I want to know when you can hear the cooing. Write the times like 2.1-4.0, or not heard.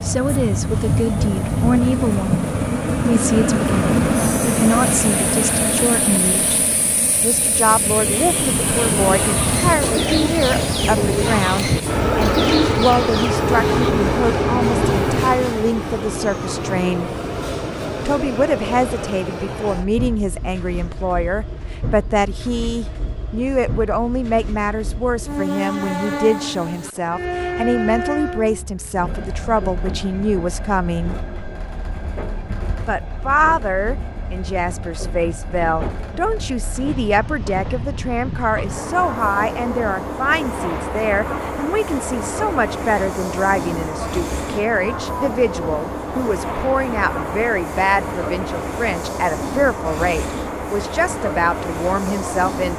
9.0-13.9.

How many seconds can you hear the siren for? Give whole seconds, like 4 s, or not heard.
not heard.